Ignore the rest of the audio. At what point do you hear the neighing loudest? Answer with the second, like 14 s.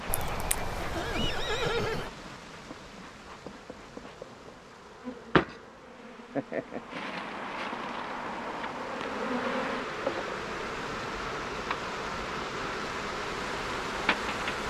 2 s.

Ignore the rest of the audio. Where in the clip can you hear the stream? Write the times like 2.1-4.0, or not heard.
0.0-14.6.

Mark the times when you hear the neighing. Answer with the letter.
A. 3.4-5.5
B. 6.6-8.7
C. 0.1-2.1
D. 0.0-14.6
C.